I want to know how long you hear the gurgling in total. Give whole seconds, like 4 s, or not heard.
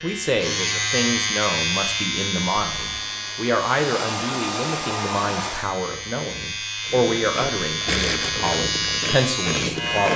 3 s.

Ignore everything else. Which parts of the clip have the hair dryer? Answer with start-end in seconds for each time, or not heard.
2.8-5.8.